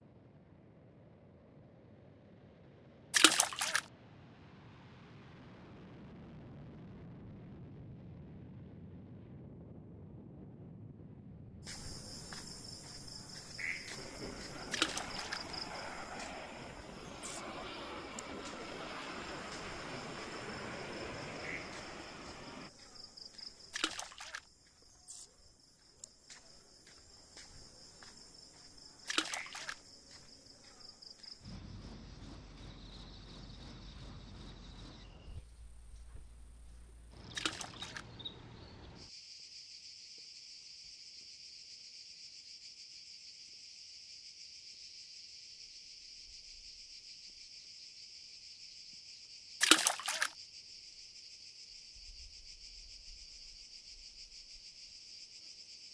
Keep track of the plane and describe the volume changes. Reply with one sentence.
The loudness of the plane goes up.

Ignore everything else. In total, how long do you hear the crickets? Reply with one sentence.
The crickets can be heard for 44 seconds in total.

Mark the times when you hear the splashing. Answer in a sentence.
You can hear the splashing from 3.1 to 3.8 s, from 14.7 to 15.4 s, from 23.7 to 24.4 s, from 29.1 to 29.8 s, from 37.4 to 38.0 s and from 49.6 to 50.3 s.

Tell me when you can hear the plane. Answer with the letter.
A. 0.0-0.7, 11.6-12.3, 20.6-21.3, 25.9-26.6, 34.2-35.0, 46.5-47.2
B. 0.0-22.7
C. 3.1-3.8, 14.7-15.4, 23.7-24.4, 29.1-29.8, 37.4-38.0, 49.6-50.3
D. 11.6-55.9
B.